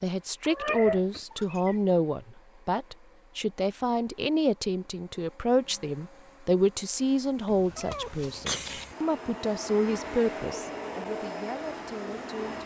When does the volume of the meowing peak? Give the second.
1 s.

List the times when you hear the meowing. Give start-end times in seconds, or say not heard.
0.4-1.8, 7.5-8.9.